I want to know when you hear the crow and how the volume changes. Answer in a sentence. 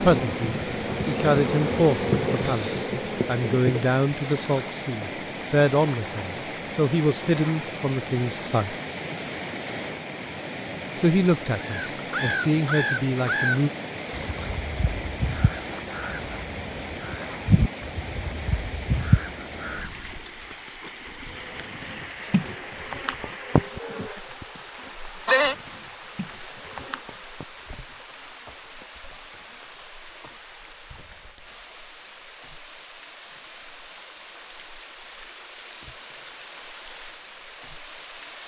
The crow can be heard from 11.6 to 19.9 s, getting quieter then louder.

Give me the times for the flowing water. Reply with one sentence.
The flowing water can be heard from 0.0 to 38.4 s.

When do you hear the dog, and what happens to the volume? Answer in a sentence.
The dog can't be heard in this clip.